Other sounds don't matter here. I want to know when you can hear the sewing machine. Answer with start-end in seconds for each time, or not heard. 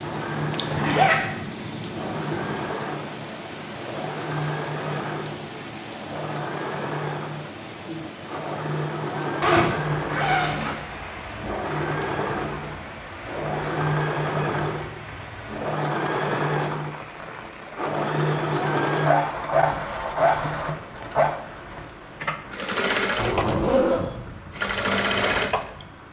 0.0-25.9.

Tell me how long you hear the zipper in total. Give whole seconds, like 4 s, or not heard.
3 s.